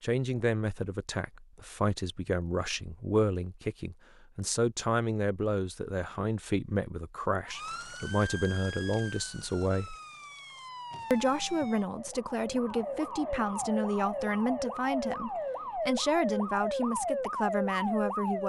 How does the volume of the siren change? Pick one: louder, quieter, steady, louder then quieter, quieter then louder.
louder.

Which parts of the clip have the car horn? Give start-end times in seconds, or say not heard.
not heard.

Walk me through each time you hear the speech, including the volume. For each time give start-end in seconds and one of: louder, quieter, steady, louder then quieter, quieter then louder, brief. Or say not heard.
0.0-9.9 steady
11.1-18.4 steady.